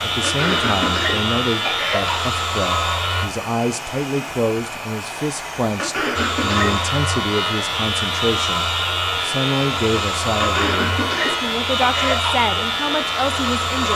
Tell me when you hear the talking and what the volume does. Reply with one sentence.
The talking can be heard from 0.0 to 13.9 s, at a steady volume.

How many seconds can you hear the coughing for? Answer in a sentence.
You can hear the coughing for 5 seconds altogether.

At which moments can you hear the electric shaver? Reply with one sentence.
You can hear the electric shaver from 0.0 to 3.2 s and from 6.2 to 13.9 s.